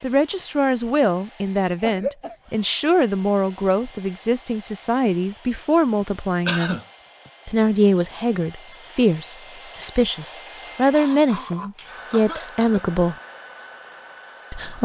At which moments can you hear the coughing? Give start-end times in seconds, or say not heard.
1.8-2.4, 6.0-7.3, 10.9-12.8.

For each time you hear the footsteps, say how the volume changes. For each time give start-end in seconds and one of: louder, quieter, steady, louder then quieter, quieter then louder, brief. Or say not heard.
not heard.